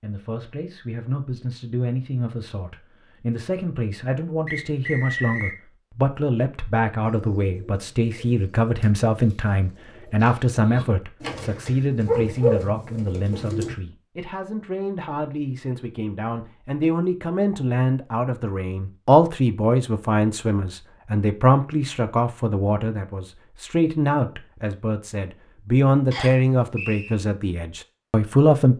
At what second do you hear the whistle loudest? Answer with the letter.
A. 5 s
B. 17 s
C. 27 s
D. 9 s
A.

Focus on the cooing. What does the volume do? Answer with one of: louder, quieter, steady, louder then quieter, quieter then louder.
louder.